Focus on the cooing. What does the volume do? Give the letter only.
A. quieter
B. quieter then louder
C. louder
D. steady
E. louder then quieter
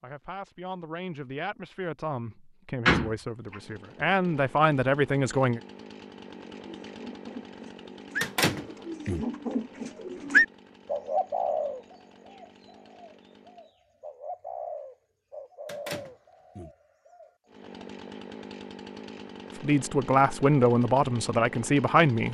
E.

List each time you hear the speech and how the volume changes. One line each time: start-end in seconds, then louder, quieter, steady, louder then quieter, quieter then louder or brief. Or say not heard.
0.0-5.6 louder
19.6-22.2 brief.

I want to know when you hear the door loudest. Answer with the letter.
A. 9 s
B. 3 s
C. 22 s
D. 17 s
B.